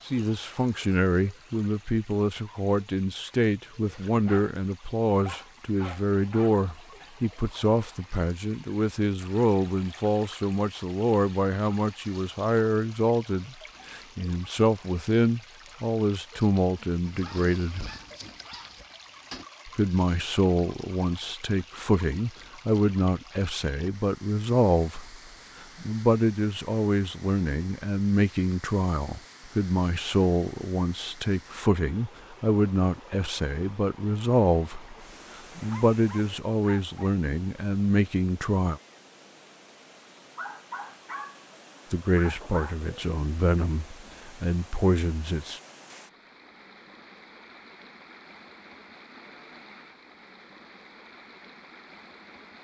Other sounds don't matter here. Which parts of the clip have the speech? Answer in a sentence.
You can hear the speech from 0.1 to 17.9 s, from 19.6 to 25.1 s, from 25.8 to 35.0 s, from 35.5 to 38.8 s and from 41.9 to 45.6 s.